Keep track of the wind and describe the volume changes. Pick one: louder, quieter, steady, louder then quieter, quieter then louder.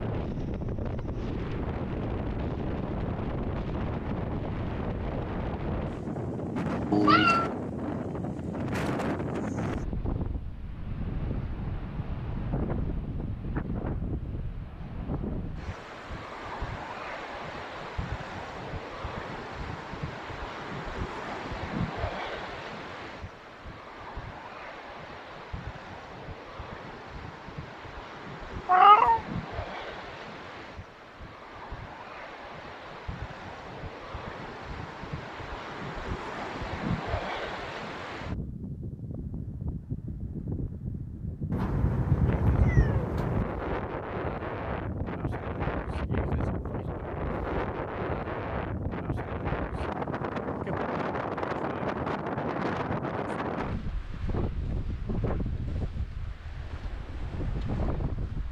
quieter then louder.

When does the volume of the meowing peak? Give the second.
29 s.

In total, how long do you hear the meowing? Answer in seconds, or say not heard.
3 s.